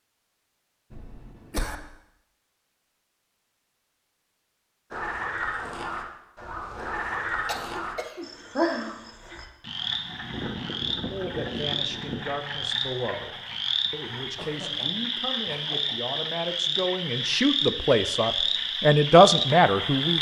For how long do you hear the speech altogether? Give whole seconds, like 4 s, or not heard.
9 s.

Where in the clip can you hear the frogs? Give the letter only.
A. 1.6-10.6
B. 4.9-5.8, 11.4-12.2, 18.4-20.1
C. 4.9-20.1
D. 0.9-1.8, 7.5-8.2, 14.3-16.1
C.